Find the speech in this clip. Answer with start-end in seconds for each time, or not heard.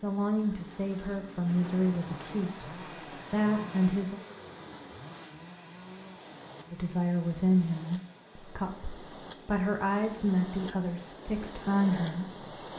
0.0-4.2, 6.7-12.4.